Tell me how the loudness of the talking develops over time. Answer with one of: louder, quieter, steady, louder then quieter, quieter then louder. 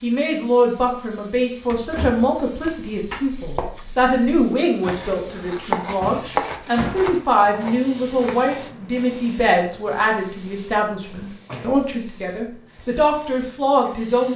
steady.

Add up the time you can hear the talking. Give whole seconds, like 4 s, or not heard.
14 s.